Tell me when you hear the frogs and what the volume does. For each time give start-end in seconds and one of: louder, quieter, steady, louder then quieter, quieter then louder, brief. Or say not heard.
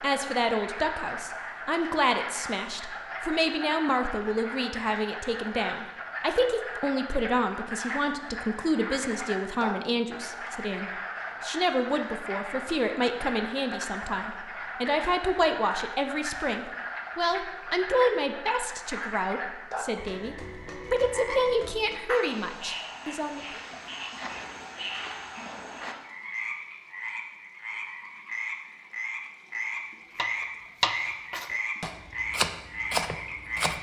0.0-33.7 steady.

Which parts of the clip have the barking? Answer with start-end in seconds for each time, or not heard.
not heard.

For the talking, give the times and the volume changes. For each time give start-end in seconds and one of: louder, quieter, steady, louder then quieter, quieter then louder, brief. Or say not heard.
0.0-23.4 steady.